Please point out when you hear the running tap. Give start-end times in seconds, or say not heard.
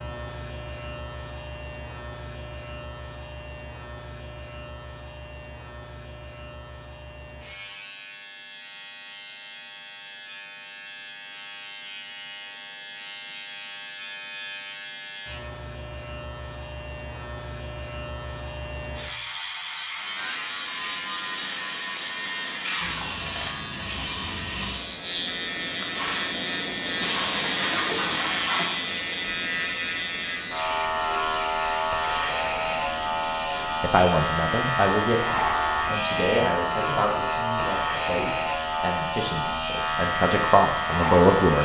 19.9-33.9.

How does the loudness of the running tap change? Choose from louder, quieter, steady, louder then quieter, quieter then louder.
louder then quieter.